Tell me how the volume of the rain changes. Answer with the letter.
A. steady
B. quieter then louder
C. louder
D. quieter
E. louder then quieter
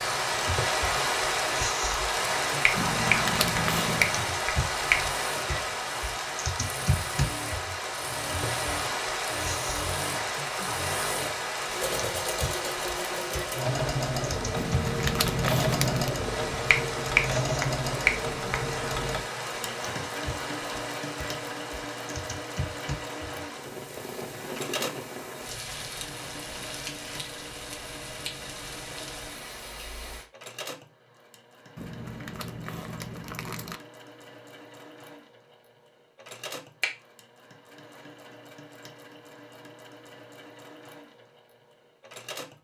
D.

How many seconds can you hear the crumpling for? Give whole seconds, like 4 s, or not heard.
5 s.